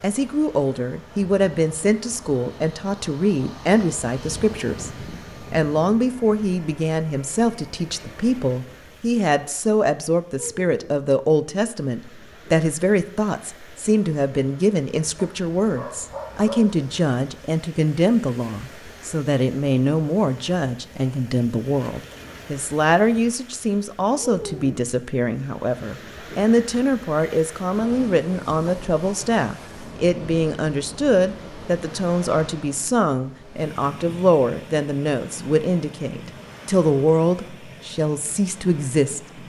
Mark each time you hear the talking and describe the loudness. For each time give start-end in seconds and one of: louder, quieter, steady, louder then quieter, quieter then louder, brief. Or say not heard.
0.0-39.4 steady.